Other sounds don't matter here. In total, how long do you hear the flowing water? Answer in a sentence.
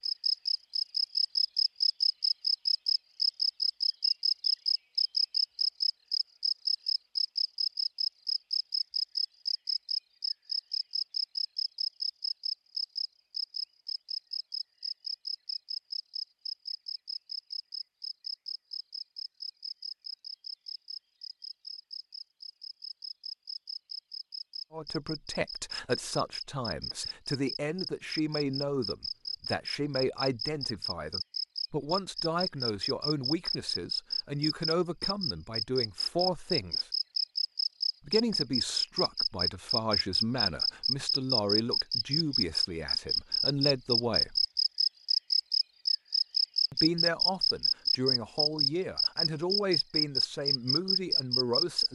The flowing water can't be heard in this clip.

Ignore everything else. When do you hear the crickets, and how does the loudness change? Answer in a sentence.
The crickets can be heard from 0.0 to 51.9 s, getting quieter then louder.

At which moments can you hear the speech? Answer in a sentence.
You can hear the speech from 24.7 to 36.9 s, from 38.0 to 44.5 s and from 46.7 to 51.9 s.